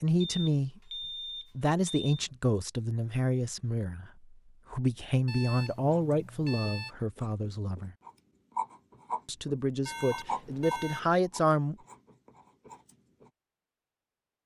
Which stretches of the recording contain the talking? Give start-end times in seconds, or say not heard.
0.0-0.8, 1.6-8.0, 9.2-11.8.